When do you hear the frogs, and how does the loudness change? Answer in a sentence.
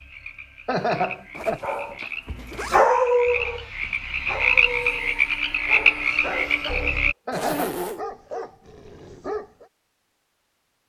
You can hear the frogs from 0.0 to 7.2 s, getting louder.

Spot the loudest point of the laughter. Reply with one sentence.
The loudest moment of the laughter is at 1 second.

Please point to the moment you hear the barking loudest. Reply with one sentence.
The volume of the barking peaks at 3 seconds.